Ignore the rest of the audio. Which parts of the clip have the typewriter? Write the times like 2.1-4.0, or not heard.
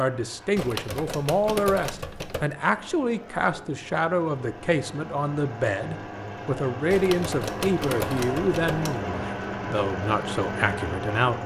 0.6-2.5, 6.9-9.1.